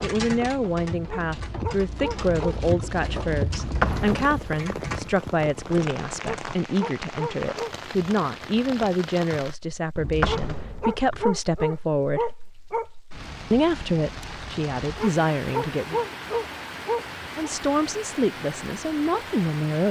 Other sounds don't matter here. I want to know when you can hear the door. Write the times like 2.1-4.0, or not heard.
3.5-4.8, 9.9-11.2.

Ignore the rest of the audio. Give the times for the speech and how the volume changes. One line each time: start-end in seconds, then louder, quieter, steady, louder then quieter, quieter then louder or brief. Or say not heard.
0.0-12.3 steady
13.5-16.0 brief
17.4-19.8 brief.